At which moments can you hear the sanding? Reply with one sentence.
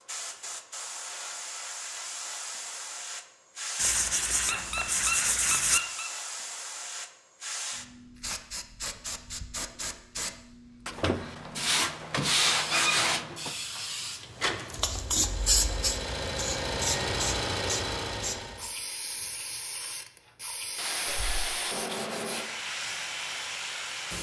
You can hear the sanding from 3.8 to 5.8 s, from 10.8 to 13.6 s and from 20.8 to 22.5 s.